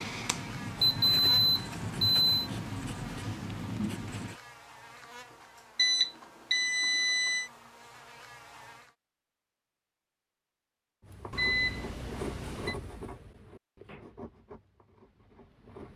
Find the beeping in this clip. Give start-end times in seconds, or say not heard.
0.8-2.2, 5.8-7.5, 11.3-12.8.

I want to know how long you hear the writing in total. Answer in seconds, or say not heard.
9 s.